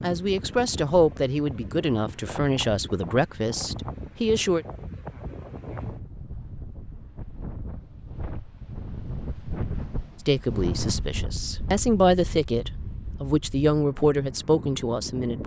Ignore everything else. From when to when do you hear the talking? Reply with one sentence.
The talking can be heard from 0.0 to 4.7 s and from 10.2 to 15.4 s.